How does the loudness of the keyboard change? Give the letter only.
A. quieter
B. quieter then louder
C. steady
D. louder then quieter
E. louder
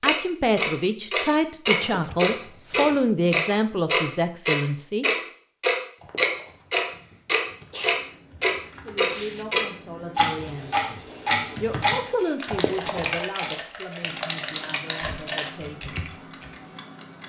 E.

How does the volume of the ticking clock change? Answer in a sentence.
The volume of the ticking clock goes down.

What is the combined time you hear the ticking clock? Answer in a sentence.
The ticking clock can be heard for 17 seconds in total.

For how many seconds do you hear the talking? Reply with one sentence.
You can hear the talking for 12 seconds altogether.